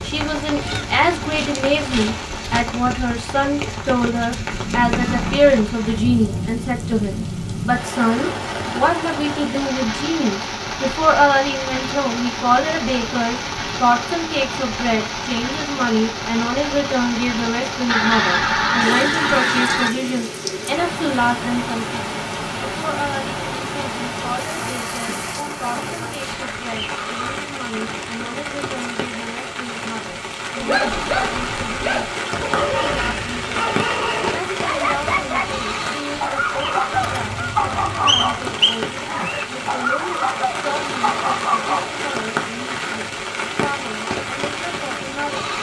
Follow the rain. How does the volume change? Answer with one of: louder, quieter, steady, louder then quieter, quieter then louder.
steady.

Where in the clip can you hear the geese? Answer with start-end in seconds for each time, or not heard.
0.6-2.6, 17.9-19.9, 36.9-38.5.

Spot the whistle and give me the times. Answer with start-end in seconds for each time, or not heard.
38.0-39.5.